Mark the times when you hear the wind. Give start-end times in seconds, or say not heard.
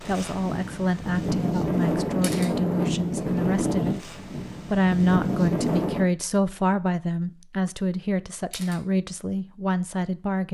0.0-6.0.